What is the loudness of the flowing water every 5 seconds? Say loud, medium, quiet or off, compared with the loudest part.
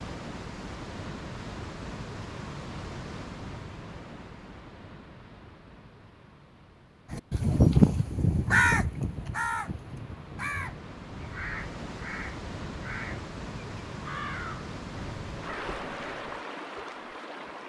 loud, quiet, loud, loud.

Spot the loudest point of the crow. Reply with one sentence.
The loudest moment of the crow is at 8 seconds.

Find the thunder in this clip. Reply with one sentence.
You can't hear the thunder here.